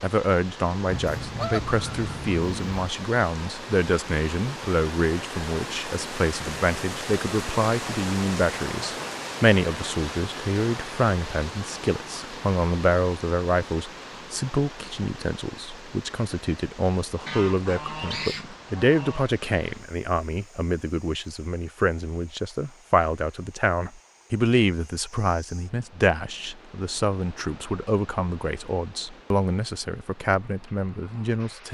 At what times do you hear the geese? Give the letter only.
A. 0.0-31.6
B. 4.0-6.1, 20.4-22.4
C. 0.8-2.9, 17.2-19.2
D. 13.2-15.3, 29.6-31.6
C.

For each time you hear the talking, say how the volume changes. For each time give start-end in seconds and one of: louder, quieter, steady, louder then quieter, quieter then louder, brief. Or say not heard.
0.0-31.6 steady.